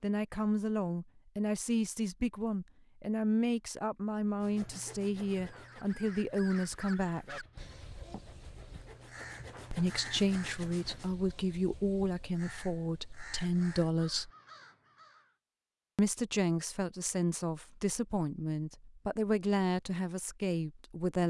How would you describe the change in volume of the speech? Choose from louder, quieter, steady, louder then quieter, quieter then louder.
steady.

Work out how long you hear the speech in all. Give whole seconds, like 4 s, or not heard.
17 s.